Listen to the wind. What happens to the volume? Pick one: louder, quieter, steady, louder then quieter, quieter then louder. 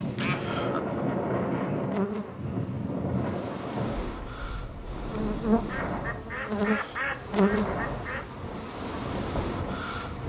quieter.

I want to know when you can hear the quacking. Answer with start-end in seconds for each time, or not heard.
0.1-0.8, 5.7-8.2.